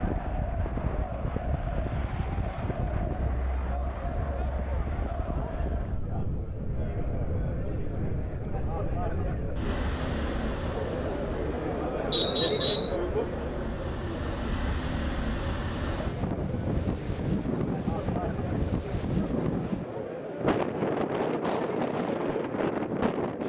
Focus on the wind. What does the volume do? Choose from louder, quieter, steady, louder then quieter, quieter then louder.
louder.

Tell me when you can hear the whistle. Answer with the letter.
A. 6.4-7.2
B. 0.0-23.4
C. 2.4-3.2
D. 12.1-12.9
D.